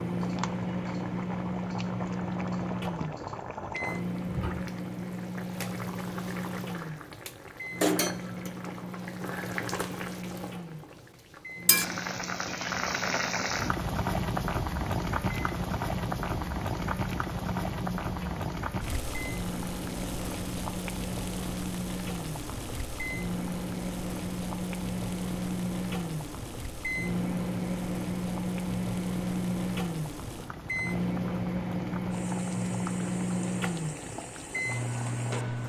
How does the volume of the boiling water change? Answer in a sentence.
The loudness of the boiling water goes up, then down.